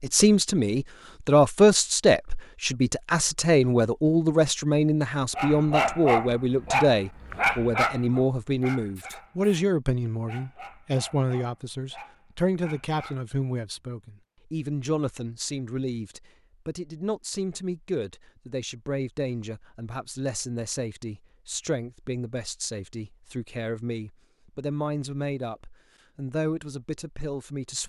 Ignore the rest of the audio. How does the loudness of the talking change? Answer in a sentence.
The loudness of the talking goes down.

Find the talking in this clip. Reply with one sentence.
The talking can be heard from 0.0 to 27.8 s.